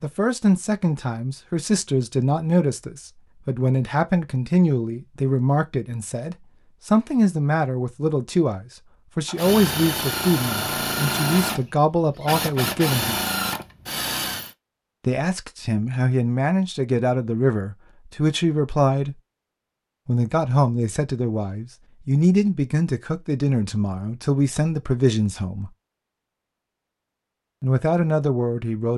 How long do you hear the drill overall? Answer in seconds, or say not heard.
5 s.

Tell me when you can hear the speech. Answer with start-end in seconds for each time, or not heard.
0.0-13.2, 15.1-19.1, 20.1-25.7, 27.6-28.9.